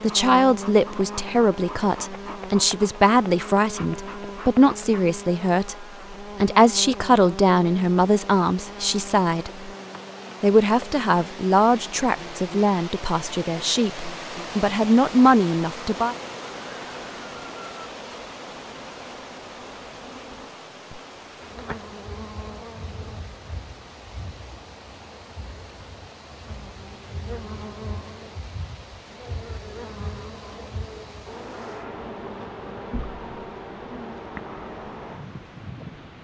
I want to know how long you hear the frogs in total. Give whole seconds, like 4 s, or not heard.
not heard.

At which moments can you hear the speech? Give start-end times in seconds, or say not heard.
0.0-9.7, 10.4-16.1.